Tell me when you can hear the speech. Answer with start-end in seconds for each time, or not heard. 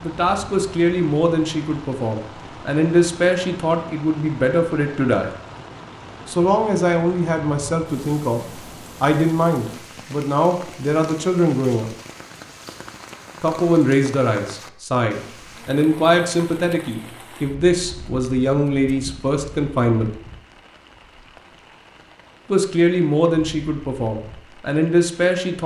0.0-5.3, 6.2-11.9, 13.4-20.1, 22.5-25.6.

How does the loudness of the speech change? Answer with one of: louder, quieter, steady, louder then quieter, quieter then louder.
steady.